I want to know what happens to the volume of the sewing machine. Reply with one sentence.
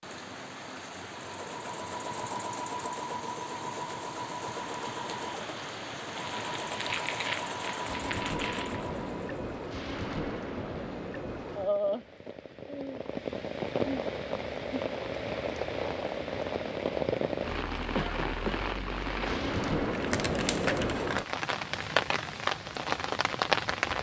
The loudness of the sewing machine stays about the same.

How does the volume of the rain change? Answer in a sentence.
The loudness of the rain goes up.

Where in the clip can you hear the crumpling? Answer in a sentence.
You can hear the crumpling from 6.2 to 8.9 s and from 19.6 to 21.2 s.